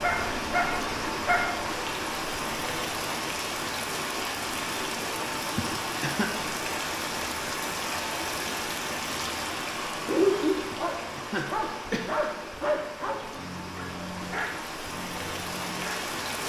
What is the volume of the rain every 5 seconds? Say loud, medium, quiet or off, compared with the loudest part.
loud, loud, medium, loud.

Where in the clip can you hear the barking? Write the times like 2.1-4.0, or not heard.
0.0-1.6, 10.1-16.1.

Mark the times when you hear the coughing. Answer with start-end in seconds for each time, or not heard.
5.5-6.2, 10.7-12.1.